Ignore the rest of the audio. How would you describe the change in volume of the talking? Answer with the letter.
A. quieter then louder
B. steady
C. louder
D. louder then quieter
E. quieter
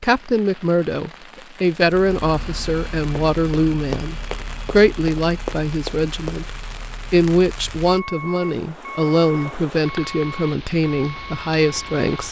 B.